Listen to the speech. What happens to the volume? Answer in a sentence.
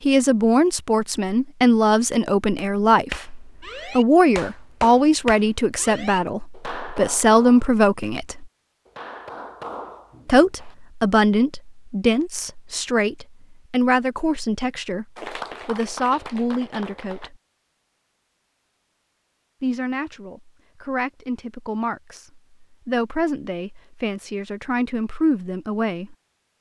The loudness of the speech goes down.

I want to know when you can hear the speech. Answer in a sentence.
The speech can be heard from 0.0 to 8.4 s, from 10.2 to 17.4 s and from 19.6 to 26.1 s.